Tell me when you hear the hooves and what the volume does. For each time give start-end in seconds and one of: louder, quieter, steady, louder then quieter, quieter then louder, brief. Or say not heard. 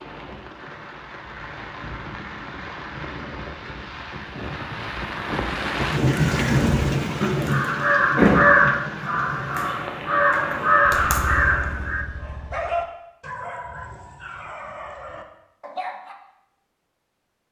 not heard.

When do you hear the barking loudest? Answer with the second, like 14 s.
13 s.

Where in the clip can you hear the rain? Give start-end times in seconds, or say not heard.
0.0-11.3.